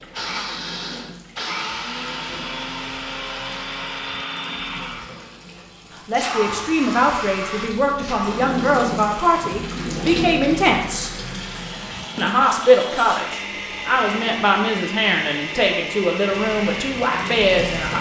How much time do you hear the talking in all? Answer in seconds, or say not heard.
11 s.